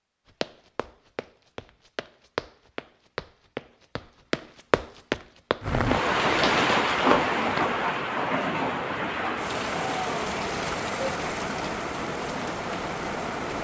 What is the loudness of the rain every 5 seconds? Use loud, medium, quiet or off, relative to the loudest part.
off, loud, medium.